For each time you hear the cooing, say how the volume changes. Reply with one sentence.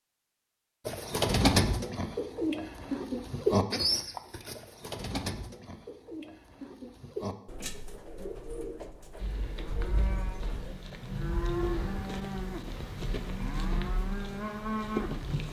You can hear the cooing from 0.8 to 10.8 s, getting quieter.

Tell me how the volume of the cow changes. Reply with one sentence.
The volume of the cow goes up.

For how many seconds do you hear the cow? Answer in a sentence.
The cow can be heard for 6 seconds in total.